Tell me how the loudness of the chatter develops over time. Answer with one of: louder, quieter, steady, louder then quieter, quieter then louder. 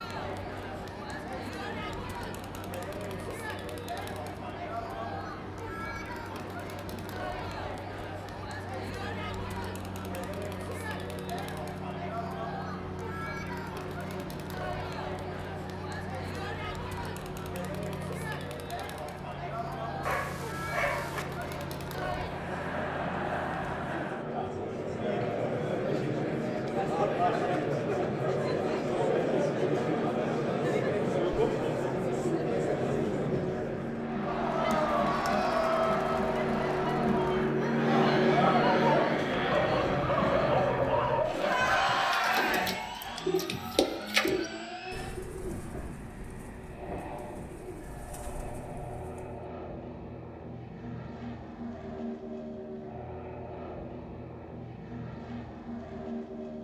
louder.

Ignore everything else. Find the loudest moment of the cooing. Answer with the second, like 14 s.
44 s.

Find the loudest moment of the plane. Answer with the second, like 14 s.
38 s.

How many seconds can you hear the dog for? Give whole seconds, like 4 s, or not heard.
4 s.